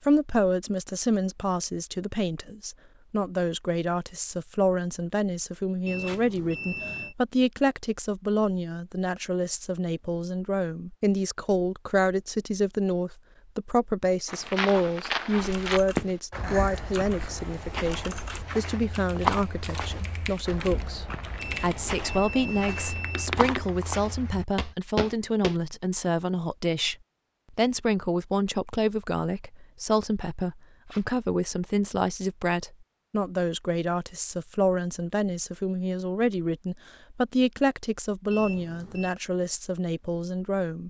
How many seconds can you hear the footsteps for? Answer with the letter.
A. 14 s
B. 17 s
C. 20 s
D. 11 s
D.